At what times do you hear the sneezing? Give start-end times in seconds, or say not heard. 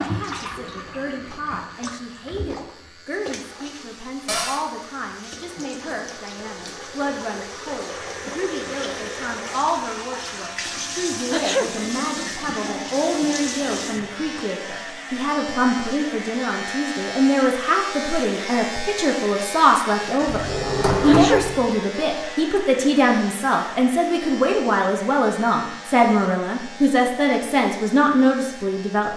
11.3-11.8, 21.1-21.6.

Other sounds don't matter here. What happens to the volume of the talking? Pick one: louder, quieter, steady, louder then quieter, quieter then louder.
louder.